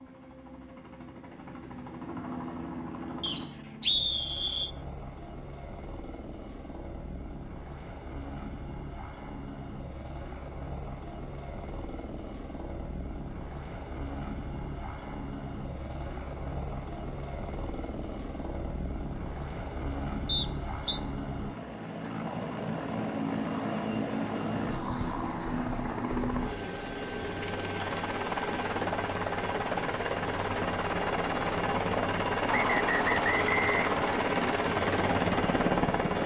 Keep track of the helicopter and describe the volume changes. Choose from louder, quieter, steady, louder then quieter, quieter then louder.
louder.